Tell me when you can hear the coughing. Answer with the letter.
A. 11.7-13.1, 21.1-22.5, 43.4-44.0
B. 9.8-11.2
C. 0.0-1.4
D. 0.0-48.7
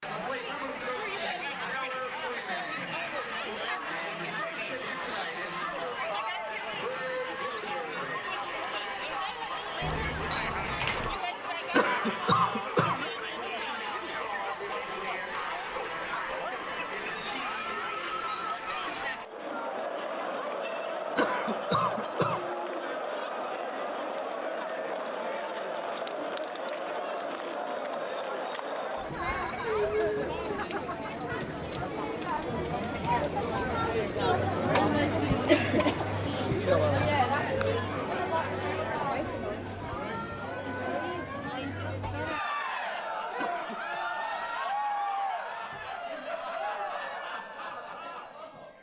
A.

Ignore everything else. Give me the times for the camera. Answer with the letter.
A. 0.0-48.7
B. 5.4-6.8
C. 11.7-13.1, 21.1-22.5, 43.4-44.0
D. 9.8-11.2
D.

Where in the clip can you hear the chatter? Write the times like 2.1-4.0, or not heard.
0.0-48.7.